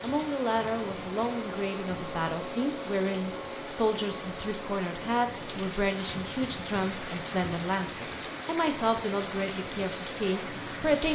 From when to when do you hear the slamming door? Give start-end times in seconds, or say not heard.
not heard.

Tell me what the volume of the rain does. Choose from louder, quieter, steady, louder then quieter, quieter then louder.
louder.